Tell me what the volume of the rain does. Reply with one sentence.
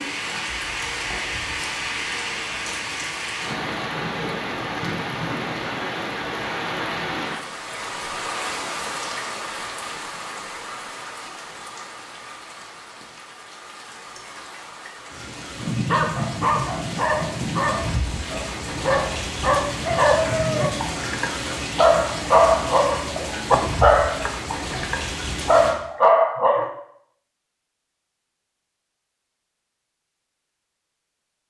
The loudness of the rain goes down, then up.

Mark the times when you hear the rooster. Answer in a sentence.
You can't hear the rooster here.